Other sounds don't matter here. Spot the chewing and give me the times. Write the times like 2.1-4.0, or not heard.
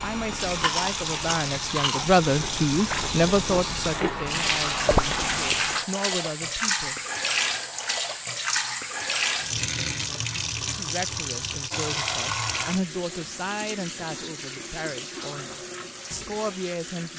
0.0-5.8.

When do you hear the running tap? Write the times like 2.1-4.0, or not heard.
0.0-17.1.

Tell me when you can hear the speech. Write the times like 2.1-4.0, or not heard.
0.0-7.0, 10.7-17.1.